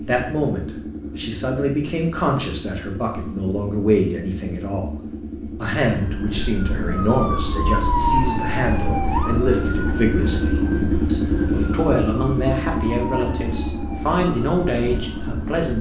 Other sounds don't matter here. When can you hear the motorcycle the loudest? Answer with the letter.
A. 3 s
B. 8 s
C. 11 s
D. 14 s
C.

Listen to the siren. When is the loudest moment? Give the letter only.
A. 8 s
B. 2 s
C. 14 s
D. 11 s
A.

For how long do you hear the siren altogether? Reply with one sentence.
The siren can be heard for 10 seconds in total.